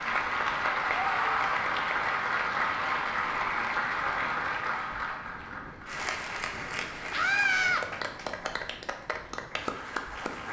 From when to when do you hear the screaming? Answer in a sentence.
You can hear the screaming from 0.9 to 1.6 s and from 7.1 to 7.8 s.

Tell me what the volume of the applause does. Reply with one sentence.
The volume of the applause goes down.